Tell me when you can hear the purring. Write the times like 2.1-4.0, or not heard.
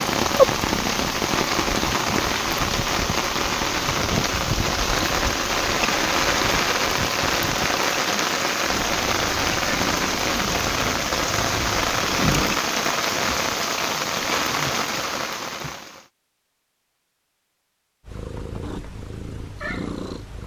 0.1-2.9, 8.7-12.6, 18.1-20.4.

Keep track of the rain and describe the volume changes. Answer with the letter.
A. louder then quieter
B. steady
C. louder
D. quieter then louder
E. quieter
B.